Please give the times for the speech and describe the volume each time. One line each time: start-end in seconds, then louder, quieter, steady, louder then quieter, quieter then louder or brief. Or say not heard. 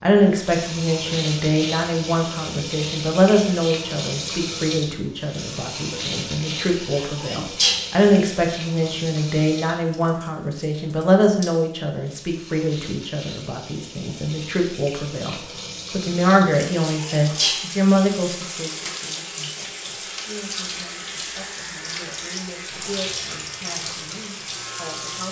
0.0-25.2 quieter.